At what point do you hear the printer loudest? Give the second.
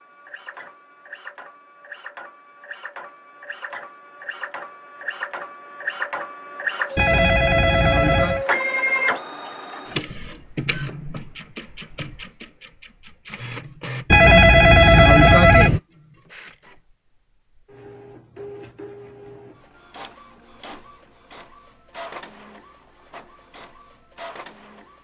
9 s.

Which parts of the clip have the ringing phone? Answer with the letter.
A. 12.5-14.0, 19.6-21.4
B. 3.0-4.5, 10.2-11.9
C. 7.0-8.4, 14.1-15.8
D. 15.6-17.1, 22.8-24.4
C.